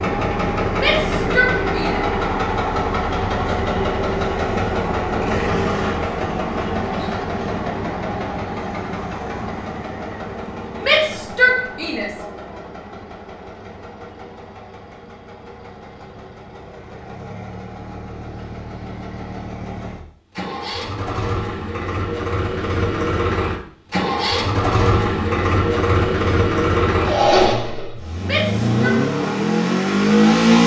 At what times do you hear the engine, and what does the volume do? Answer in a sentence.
The engine can be heard from 0.0 to 30.6 s, getting quieter then louder.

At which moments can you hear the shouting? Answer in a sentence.
You can hear the shouting from 0.8 to 2.0 s, from 10.8 to 12.2 s and from 28.2 to 28.9 s.